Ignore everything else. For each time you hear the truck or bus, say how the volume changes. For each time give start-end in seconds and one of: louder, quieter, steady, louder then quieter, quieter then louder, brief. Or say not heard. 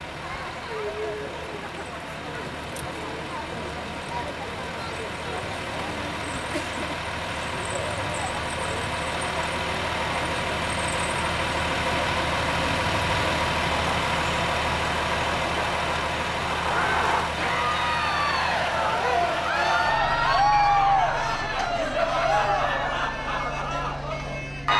0.0-24.7 louder then quieter.